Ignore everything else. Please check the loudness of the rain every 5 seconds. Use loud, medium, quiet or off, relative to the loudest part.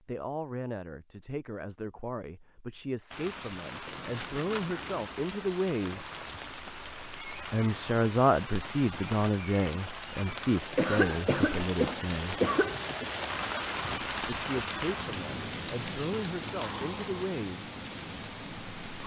medium, medium, loud, loud.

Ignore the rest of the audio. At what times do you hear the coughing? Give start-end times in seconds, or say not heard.
10.8-13.1.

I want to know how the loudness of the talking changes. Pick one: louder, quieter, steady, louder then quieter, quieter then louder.
louder then quieter.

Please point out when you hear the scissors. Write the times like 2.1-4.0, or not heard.
3.9-5.0.